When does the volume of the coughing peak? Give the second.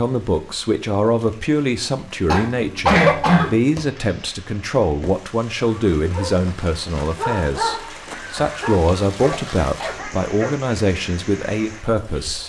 3 s.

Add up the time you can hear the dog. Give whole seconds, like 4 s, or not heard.
5 s.